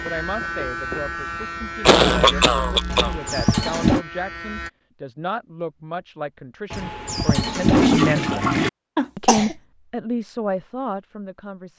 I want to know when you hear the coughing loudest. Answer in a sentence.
The volume of the coughing peaks at 2 seconds.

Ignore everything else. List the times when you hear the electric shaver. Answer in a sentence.
You can hear the electric shaver from 0.0 to 4.7 s.